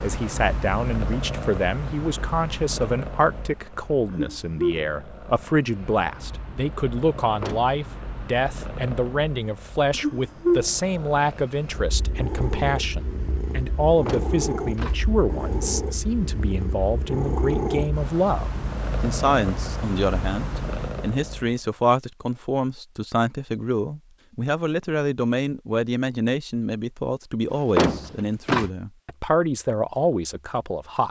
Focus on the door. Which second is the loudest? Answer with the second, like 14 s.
28 s.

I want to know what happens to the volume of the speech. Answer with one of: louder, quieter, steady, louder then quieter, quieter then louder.
steady.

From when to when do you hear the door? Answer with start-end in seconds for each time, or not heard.
7.2-7.8, 14.0-15.0, 27.5-28.7.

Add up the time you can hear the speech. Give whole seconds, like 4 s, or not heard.
31 s.